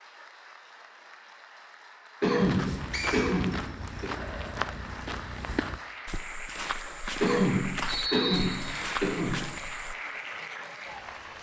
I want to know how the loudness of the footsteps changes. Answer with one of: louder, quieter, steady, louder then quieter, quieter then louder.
steady.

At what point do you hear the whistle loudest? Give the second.
8 s.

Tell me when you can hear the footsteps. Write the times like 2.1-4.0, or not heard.
2.4-9.9.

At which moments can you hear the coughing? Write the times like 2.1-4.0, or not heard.
2.2-4.1, 7.2-9.4.